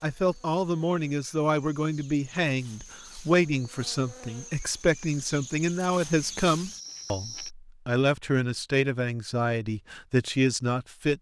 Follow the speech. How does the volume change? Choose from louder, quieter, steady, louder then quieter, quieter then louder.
steady.